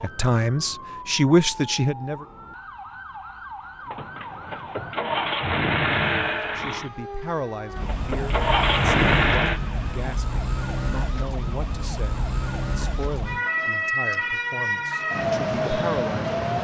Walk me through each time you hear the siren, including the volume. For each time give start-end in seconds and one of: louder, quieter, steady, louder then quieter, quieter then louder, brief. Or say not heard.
0.0-16.5 louder.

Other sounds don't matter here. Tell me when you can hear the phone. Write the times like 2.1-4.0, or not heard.
not heard.